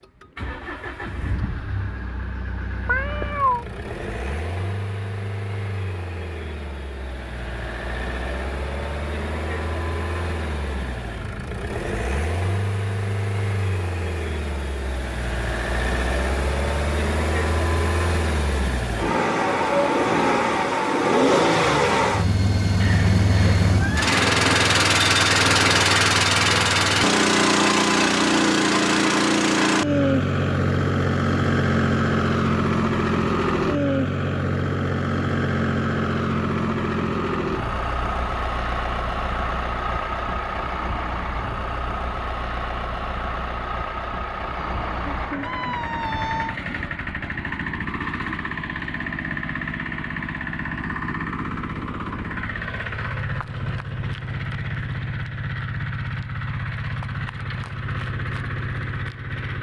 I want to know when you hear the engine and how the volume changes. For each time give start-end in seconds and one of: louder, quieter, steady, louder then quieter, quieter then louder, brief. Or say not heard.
0.0-59.5 louder then quieter.